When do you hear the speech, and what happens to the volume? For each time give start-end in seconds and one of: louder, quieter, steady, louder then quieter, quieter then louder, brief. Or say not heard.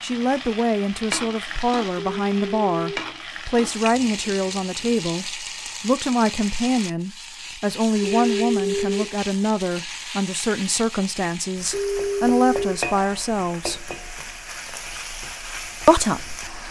0.0-13.9 steady
15.8-16.4 brief.